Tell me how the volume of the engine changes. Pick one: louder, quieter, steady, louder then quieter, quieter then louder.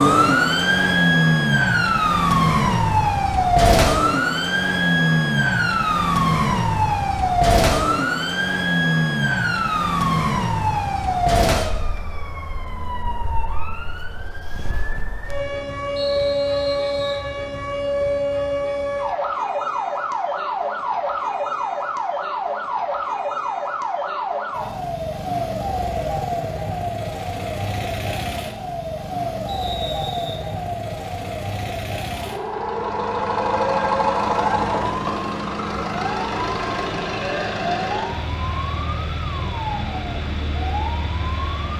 quieter.